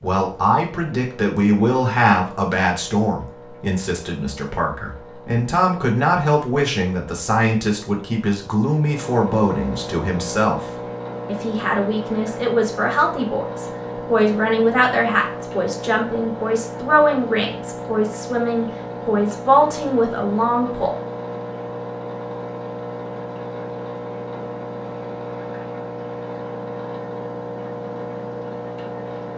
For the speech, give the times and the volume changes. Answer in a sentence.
You can hear the speech from 0.0 to 20.9 s, at a steady volume.